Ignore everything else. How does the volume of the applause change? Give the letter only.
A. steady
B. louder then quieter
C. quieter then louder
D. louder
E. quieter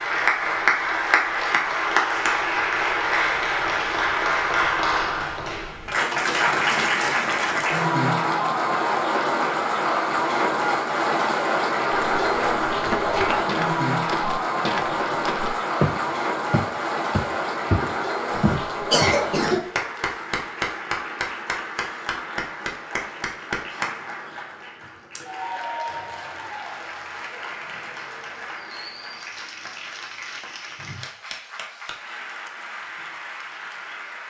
E.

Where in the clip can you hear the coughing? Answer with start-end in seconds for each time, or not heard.
18.3-19.6.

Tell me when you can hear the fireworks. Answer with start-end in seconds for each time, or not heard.
not heard.